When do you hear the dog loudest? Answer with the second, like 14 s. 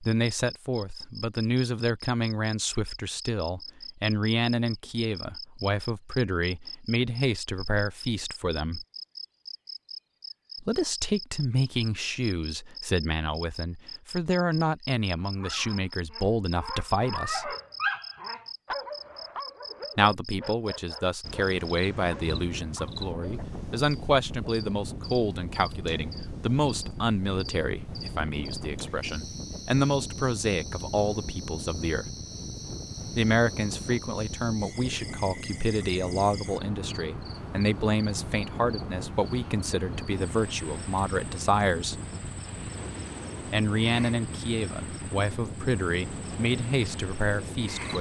18 s.